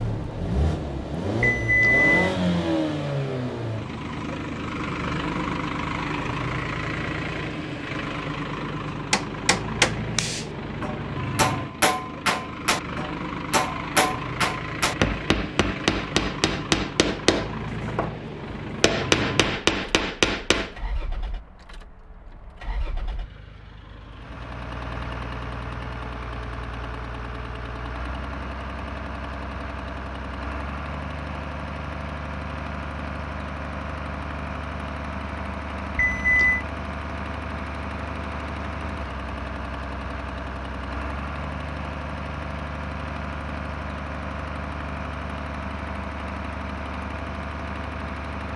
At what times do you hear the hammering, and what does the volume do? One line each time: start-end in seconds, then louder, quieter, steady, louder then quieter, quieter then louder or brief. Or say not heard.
8.8-20.8 steady.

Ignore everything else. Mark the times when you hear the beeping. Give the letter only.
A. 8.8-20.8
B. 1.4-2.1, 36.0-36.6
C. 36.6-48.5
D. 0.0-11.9
B.